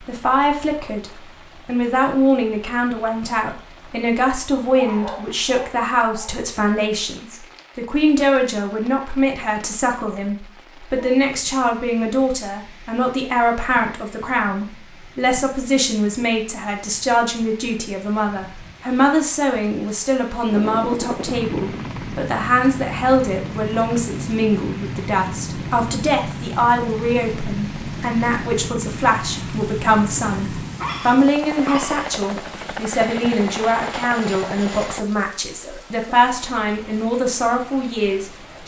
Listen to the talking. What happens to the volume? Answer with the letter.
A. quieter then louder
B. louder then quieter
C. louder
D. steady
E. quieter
D.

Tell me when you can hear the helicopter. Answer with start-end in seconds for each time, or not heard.
20.4-35.0.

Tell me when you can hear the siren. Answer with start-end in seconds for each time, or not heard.
not heard.